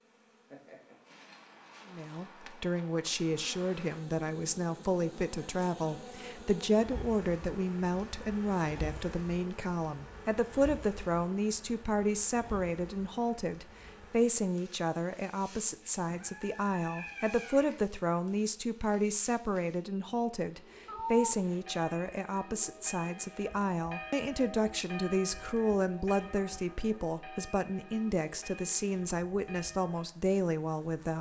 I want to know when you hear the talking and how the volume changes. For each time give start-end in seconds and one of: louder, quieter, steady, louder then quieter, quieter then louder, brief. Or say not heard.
1.9-31.1 steady.